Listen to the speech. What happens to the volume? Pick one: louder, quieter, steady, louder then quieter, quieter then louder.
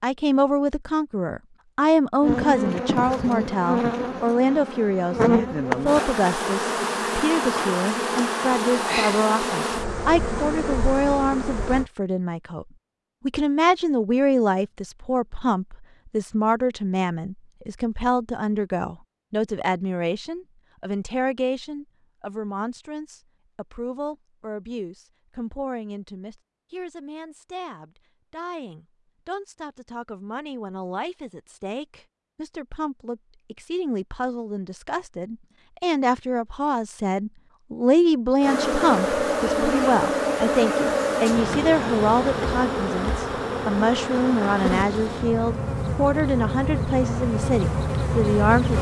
quieter then louder.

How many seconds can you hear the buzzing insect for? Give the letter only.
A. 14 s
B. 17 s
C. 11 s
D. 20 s
D.